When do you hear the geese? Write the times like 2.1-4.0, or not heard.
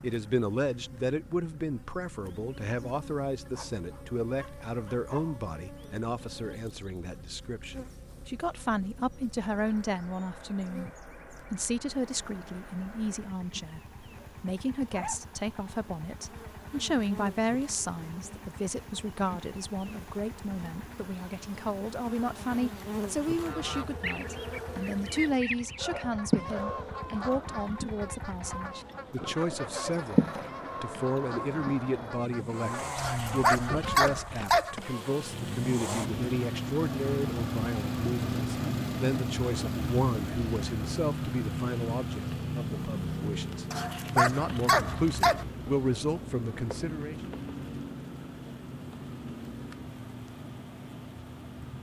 23.3-35.1.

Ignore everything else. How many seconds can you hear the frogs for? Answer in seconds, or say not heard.
not heard.